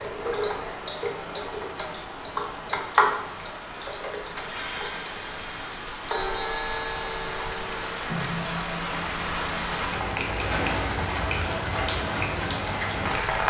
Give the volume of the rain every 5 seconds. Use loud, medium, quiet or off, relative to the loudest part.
medium, medium, loud.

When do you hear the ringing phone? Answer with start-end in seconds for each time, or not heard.
not heard.